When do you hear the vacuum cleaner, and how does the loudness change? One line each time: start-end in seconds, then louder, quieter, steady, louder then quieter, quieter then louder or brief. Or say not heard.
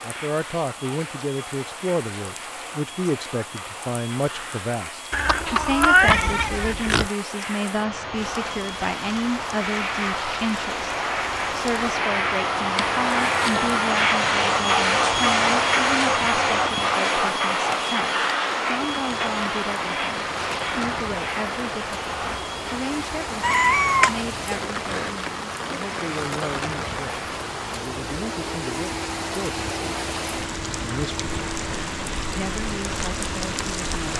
0.0-34.1 louder then quieter.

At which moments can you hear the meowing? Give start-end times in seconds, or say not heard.
5.1-7.1, 12.8-13.8, 23.4-25.1.